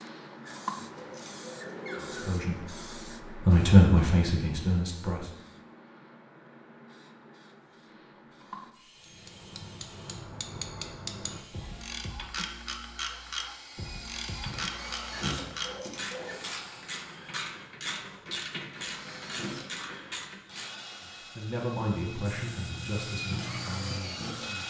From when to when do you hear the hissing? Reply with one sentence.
You can hear the hissing from 0.0 to 8.8 s and from 21.9 to 24.6 s.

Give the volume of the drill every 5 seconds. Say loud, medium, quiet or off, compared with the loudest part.
off, quiet, medium, loud, loud.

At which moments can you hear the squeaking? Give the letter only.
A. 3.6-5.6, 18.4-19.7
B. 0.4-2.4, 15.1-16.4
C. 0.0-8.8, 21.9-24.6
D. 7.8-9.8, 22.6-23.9
B.